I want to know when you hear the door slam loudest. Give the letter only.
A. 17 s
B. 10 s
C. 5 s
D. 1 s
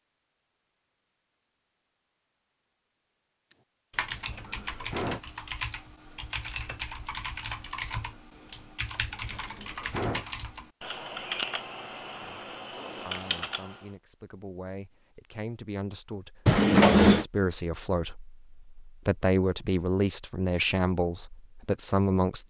A.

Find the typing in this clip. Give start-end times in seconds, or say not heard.
3.5-13.9.